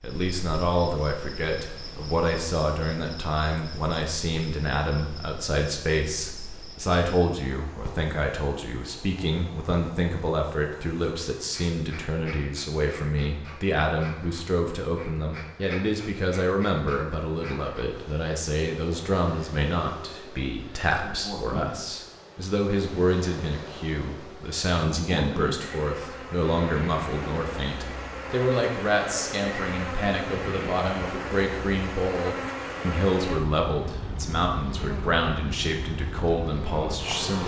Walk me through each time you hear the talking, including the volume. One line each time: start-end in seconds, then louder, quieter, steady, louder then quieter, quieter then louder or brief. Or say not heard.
0.0-37.4 steady.